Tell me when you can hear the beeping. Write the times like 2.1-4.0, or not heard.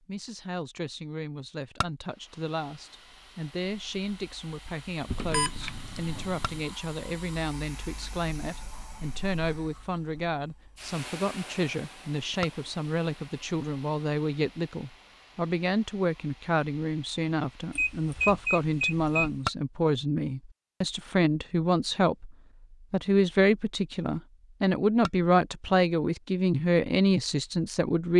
5.0-6.6, 17.7-19.4.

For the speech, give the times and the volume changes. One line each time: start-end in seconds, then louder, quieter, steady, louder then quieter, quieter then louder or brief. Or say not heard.
0.1-28.1 louder.